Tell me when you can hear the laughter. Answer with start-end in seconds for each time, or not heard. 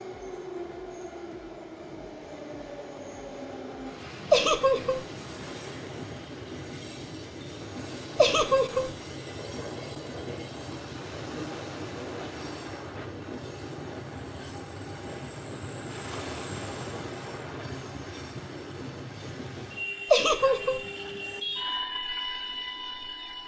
4.3-5.0, 8.2-8.9, 20.1-20.8.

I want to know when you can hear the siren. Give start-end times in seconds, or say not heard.
not heard.